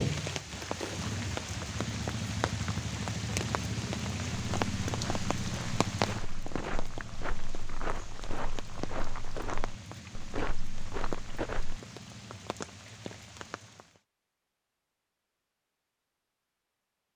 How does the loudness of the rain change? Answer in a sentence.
The loudness of the rain goes down.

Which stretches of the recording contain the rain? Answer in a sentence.
The rain can be heard from 0.0 to 14.0 s.